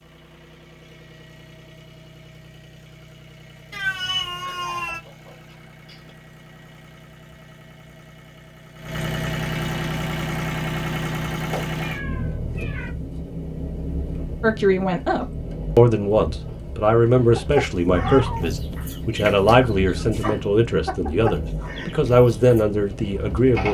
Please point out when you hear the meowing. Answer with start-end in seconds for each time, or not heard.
3.7-5.0, 11.5-12.9, 17.9-18.4.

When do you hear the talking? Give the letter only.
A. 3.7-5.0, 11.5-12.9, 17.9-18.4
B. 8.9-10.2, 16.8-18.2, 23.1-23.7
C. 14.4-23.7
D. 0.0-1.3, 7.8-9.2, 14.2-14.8
C.